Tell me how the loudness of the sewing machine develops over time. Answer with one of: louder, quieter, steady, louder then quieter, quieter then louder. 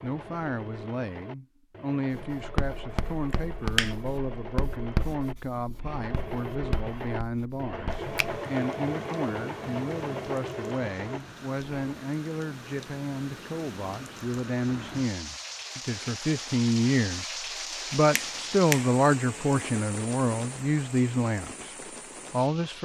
louder.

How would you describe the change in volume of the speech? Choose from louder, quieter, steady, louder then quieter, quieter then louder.
louder.